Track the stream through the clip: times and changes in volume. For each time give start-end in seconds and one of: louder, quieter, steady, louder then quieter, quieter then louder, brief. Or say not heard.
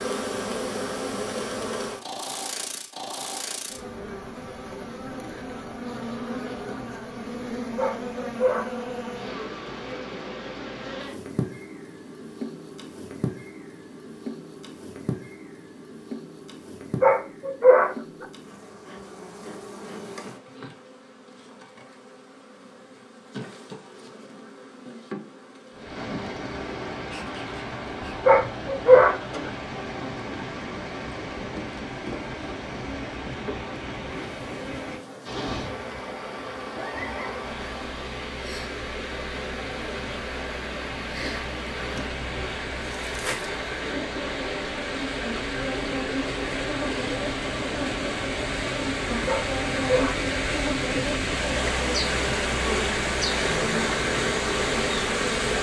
25.7-55.5 louder.